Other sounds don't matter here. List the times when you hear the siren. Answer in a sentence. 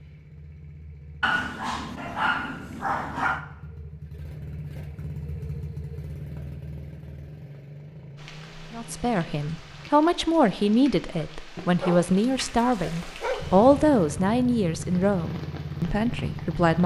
You can't hear the siren here.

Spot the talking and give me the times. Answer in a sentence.
The talking can be heard from 8.7 to 16.8 s.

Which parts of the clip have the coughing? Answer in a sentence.
The coughing can't be heard in this clip.